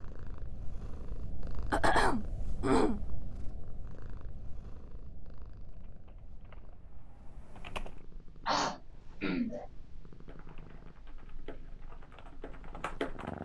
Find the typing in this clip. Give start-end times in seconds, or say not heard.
5.5-8.0, 10.2-13.4.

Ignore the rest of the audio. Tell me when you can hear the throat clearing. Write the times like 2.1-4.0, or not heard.
1.7-3.0, 8.4-9.7.